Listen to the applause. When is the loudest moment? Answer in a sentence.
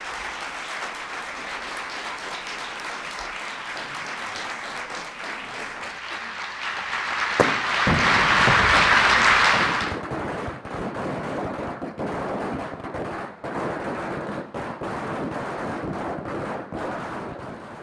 The loudest moment of the applause is at 9 seconds.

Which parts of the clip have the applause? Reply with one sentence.
The applause can be heard from 0.0 to 10.0 s.